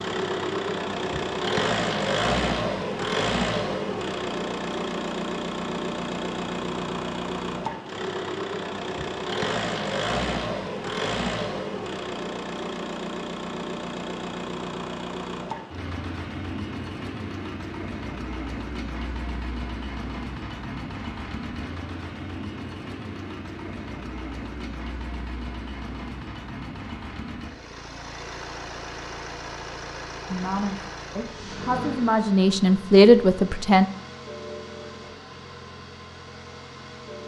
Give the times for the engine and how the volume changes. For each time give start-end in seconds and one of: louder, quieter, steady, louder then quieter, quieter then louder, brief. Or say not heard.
0.0-37.2 quieter.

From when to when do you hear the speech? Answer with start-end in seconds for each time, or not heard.
30.3-33.9.